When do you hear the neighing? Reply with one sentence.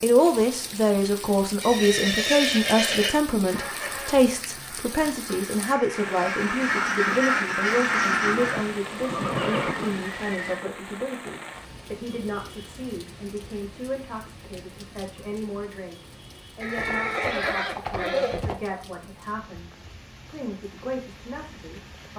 The neighing can be heard from 1.6 to 3.1 s, from 8.1 to 10.7 s and from 16.6 to 18.6 s.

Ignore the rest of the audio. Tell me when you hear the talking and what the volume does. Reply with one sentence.
You can hear the talking from 0.0 to 22.1 s, getting quieter.